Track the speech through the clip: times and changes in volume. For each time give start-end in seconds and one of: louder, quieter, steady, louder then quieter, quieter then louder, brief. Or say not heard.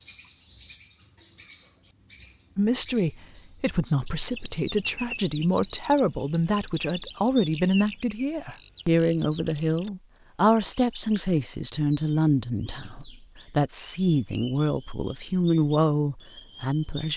2.5-17.1 steady.